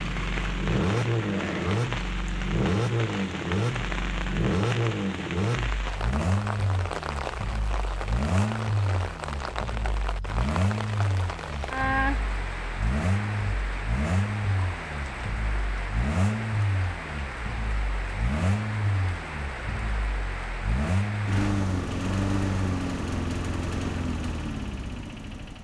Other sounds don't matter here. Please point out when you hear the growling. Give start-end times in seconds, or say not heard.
1.2-1.8.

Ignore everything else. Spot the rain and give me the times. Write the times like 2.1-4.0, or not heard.
0.0-21.5.